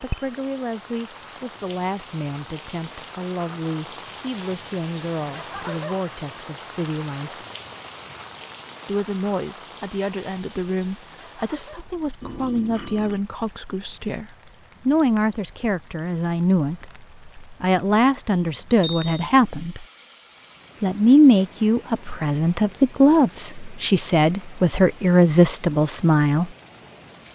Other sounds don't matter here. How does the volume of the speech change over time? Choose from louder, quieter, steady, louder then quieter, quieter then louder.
louder.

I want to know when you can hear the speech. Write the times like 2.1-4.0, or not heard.
0.0-7.5, 8.8-19.9, 20.8-26.5.